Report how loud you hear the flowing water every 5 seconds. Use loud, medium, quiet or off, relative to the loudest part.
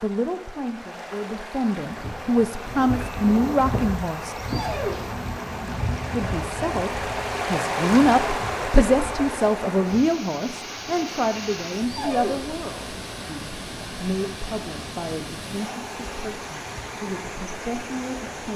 medium, loud, medium, medium.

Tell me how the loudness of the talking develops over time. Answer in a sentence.
The loudness of the talking goes down.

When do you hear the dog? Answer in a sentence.
The dog can be heard from 4.4 to 5.2 s and from 11.8 to 12.6 s.